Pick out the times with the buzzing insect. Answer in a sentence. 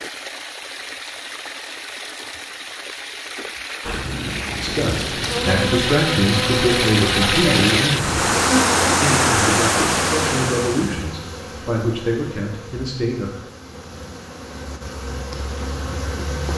The buzzing insect can be heard from 3.8 to 16.5 s.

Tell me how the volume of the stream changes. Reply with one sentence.
The volume of the stream goes up.